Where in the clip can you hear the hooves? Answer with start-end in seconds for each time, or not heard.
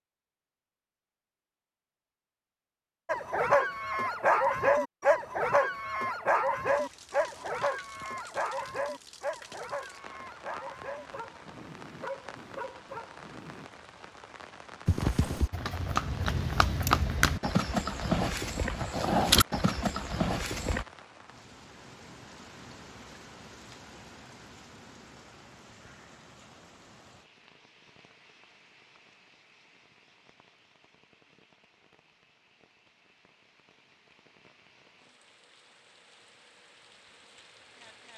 14.8-20.9.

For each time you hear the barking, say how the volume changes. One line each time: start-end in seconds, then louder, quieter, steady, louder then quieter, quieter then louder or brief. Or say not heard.
3.0-13.7 quieter.